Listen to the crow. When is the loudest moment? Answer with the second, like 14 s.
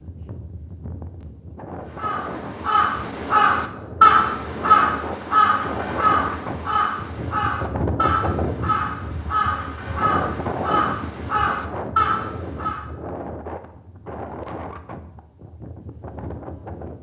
4 s.